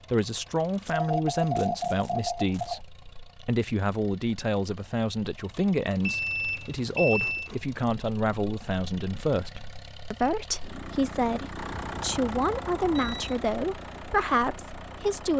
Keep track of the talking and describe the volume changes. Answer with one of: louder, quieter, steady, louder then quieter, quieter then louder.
steady.